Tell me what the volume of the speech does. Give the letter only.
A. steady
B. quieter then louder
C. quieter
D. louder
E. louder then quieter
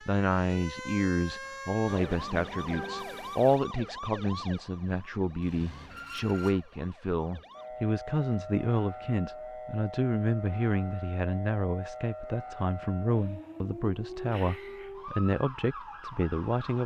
A.